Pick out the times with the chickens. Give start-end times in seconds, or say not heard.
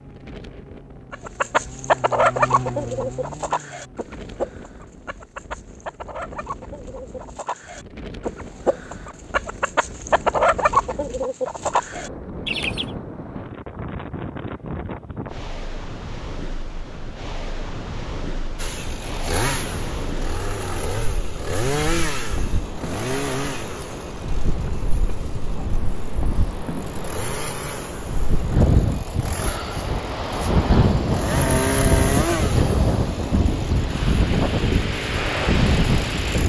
1.1-12.8.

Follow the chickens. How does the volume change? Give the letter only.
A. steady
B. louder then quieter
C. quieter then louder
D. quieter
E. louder
C.